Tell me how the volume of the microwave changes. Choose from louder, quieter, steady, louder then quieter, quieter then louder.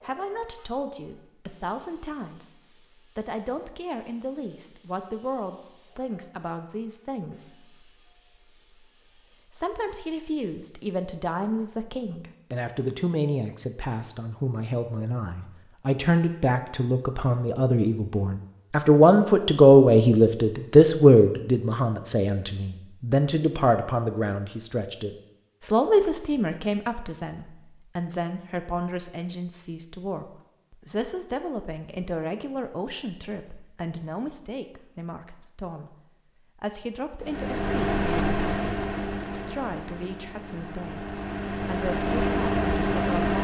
quieter then louder.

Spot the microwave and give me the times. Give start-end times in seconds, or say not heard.
37.2-43.4.